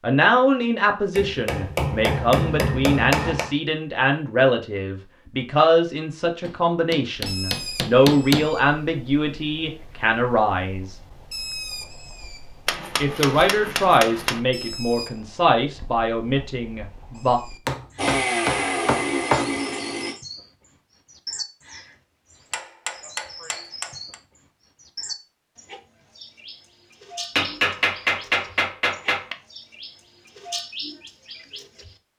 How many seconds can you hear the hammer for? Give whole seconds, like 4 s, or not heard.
12 s.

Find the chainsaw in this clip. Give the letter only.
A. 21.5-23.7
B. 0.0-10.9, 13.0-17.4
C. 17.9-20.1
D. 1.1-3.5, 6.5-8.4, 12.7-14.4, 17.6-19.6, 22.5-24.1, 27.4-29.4
C.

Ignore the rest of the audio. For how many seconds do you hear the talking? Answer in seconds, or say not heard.
15 s.